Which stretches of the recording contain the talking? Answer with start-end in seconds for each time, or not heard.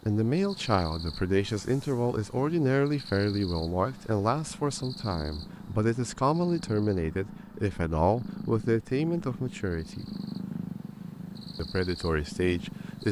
0.0-10.1, 11.6-13.0.